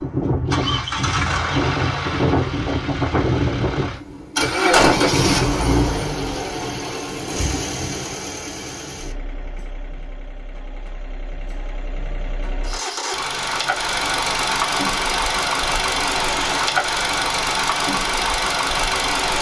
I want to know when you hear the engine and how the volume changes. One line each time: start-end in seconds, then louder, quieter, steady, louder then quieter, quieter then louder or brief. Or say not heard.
0.0-19.3 quieter then louder.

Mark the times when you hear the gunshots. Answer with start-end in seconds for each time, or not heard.
4.7-6.1.